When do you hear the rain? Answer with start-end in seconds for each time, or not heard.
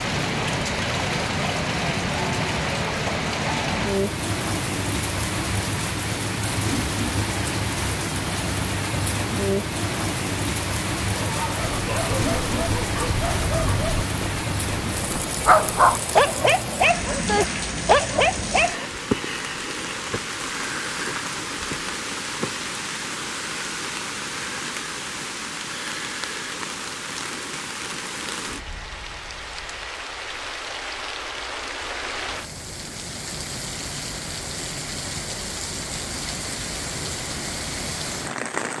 0.0-38.7.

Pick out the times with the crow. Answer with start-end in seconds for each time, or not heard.
not heard.